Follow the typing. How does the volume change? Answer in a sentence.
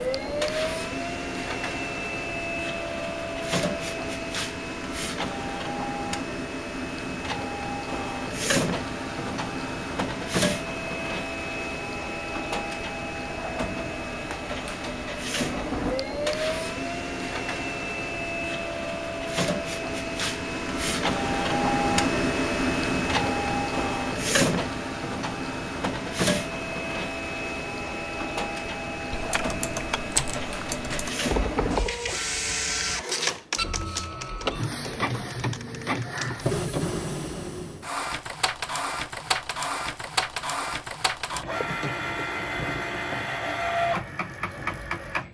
The volume of the typing goes down.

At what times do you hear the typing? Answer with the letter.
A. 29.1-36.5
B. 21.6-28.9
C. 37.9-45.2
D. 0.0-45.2
A.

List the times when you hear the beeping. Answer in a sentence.
The beeping can't be heard in this clip.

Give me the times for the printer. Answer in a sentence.
You can hear the printer from 0.0 to 45.2 s.